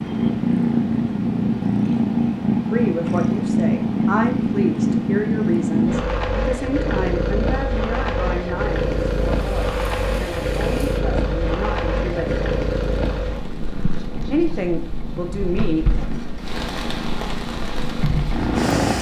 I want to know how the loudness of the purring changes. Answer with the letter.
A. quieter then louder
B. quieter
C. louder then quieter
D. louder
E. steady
B.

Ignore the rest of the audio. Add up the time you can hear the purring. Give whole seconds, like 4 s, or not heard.
19 s.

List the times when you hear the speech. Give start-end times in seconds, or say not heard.
2.7-12.3, 14.2-15.8.